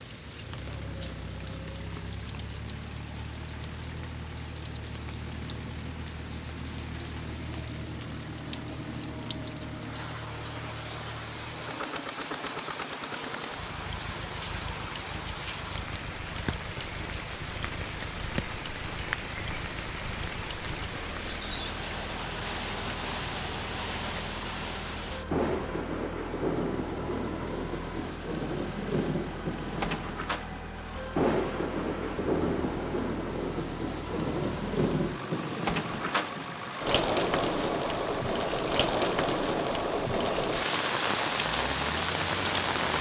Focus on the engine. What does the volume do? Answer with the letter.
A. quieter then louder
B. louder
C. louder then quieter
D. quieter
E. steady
E.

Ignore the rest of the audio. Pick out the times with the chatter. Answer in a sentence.
You can't hear the chatter here.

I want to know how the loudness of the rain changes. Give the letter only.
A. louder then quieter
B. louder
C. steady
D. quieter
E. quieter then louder
B.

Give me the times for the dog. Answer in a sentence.
You can't hear the dog here.